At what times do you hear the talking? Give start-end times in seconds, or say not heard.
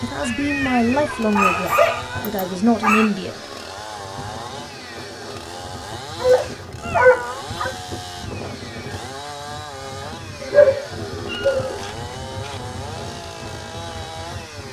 0.0-3.4.